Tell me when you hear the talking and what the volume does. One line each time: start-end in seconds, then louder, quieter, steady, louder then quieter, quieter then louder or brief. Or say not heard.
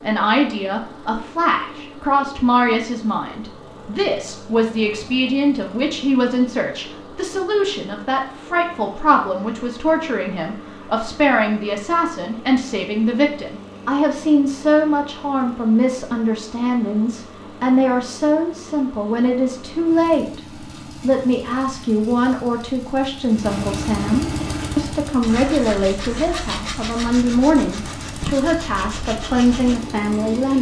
0.0-20.4 steady
21.0-30.5 steady.